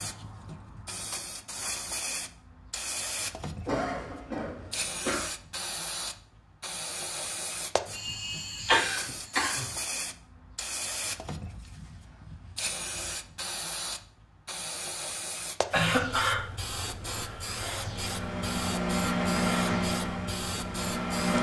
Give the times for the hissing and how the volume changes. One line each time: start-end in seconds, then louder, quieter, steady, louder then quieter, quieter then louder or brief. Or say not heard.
0.0-21.3 steady.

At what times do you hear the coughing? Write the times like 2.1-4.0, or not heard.
3.6-5.3, 7.9-9.7, 15.7-16.4.